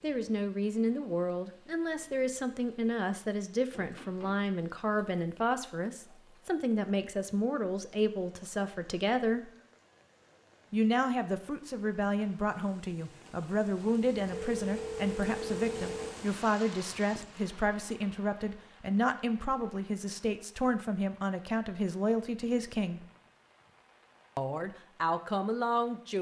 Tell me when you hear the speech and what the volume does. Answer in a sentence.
You can hear the speech from 0.0 to 9.5 s, at a steady volume; from 10.7 to 23.1 s, at a steady volume; and briefly from 24.4 to 26.1 s.